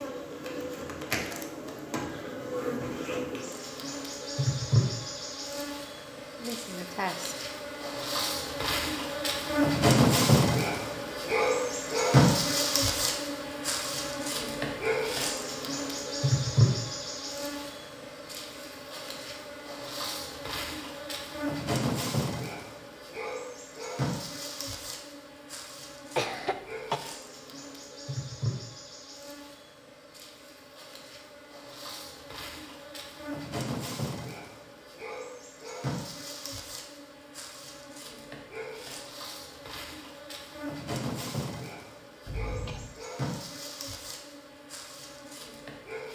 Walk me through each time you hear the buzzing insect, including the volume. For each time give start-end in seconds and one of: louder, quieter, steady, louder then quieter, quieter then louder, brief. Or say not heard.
0.0-46.1 louder then quieter.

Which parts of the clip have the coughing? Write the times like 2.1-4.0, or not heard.
6.4-7.5, 26.1-27.0, 42.2-43.0.